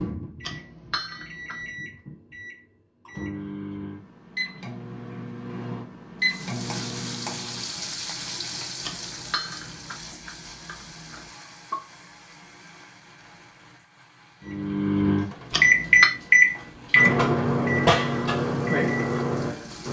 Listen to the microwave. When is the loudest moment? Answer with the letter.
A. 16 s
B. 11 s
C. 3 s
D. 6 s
A.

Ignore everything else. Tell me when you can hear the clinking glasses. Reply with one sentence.
You can hear the clinking glasses from 0.4 to 1.7 s, from 8.8 to 11.3 s and from 15.5 to 16.1 s.